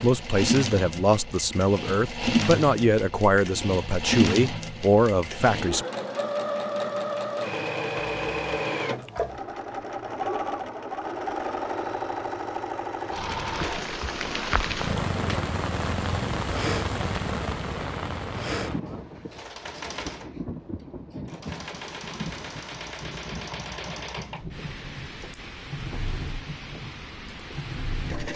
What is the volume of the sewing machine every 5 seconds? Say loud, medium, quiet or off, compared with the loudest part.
loud, loud, loud, medium, medium, medium.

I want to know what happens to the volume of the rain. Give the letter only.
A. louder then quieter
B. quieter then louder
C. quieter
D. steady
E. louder
C.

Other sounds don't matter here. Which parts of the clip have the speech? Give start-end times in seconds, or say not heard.
0.0-5.8.